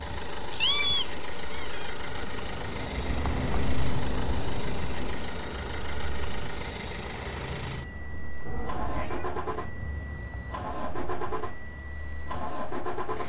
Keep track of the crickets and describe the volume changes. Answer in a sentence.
The volume of the crickets goes down.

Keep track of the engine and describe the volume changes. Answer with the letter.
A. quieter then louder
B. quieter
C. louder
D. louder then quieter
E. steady
E.